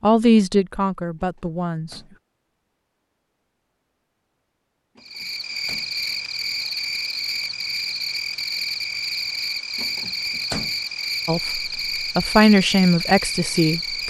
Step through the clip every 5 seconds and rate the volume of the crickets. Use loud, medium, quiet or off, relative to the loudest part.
off, loud, loud.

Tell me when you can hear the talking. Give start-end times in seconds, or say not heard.
0.0-2.0, 11.2-14.0.